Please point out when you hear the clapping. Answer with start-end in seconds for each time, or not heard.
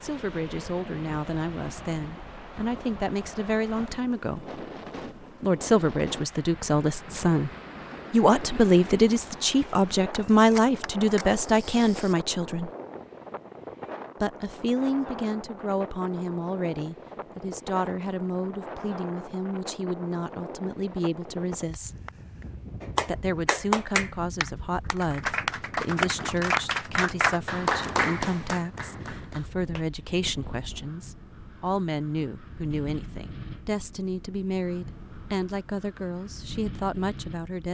22.8-29.9.